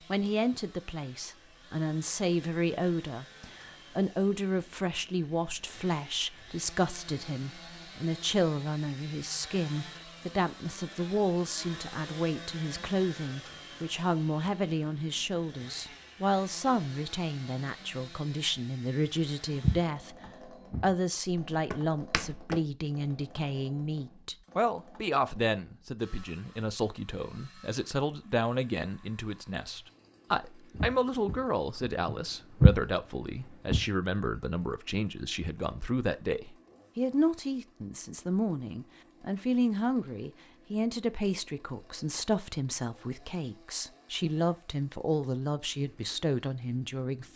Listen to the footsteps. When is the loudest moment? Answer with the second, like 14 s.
33 s.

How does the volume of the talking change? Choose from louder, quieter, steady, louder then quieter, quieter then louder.
steady.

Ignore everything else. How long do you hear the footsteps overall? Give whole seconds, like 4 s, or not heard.
6 s.